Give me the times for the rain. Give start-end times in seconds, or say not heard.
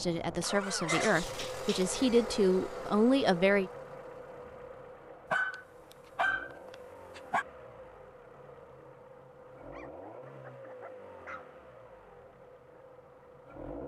not heard.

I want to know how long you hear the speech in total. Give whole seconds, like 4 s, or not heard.
4 s.